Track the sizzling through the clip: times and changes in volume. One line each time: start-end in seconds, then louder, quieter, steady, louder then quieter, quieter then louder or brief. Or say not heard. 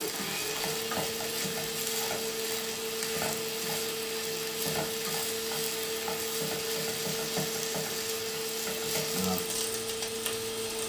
0.0-10.8 steady.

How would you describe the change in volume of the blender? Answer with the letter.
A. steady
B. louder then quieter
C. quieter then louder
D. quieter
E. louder
A.